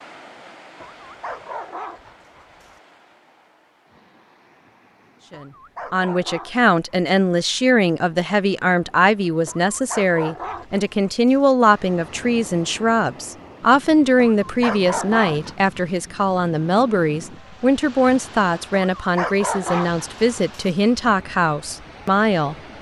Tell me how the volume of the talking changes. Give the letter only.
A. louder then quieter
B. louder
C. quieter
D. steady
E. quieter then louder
D.